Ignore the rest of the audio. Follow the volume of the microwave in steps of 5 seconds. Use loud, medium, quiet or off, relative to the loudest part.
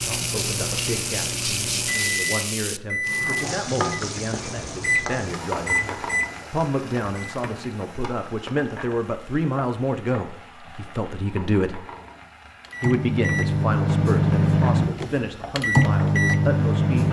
medium, medium, loud, loud.